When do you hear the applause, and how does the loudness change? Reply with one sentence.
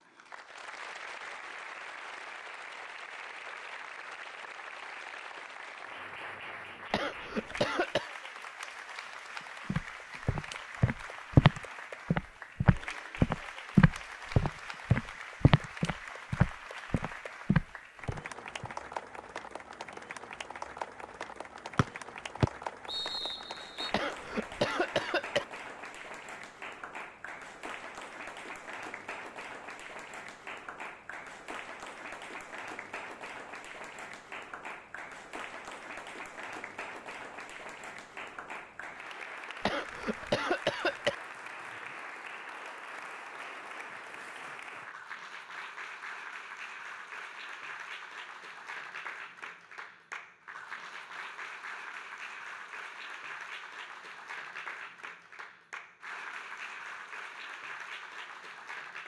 The applause can be heard from 0.0 to 59.0 s, at a steady volume.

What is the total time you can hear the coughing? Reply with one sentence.
The coughing can be heard for 4 seconds in total.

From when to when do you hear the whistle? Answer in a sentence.
You can hear the whistle from 21.8 to 23.9 s.